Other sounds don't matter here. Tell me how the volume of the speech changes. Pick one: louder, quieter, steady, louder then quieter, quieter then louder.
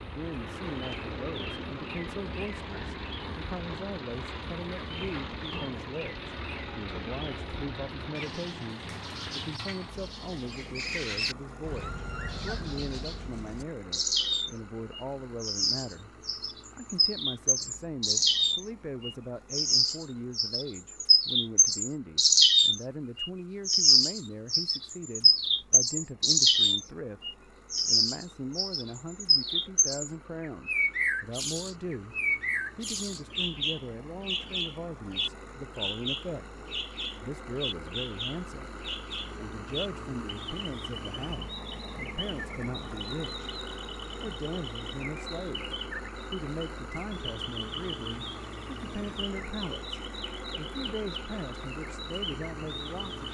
steady.